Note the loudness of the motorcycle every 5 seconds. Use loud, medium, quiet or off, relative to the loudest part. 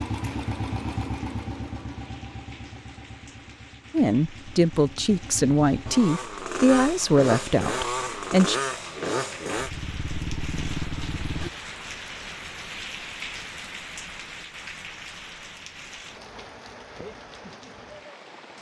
medium, loud, loud, off.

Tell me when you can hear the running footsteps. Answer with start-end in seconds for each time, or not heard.
not heard.